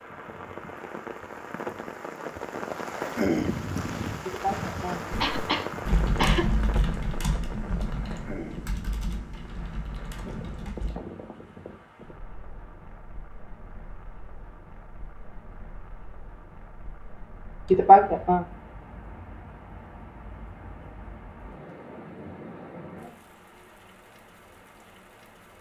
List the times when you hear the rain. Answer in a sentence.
The rain can be heard from 0.0 to 25.5 s.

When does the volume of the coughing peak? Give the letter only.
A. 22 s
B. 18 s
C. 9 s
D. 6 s
B.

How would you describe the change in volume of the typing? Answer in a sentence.
The volume of the typing goes down.